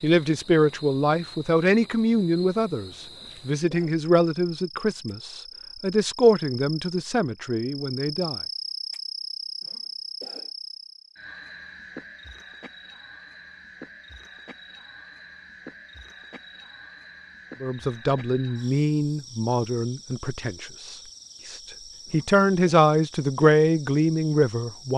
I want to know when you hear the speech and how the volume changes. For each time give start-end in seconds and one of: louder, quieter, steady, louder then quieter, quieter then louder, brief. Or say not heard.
0.0-8.4 quieter
17.6-24.9 quieter then louder.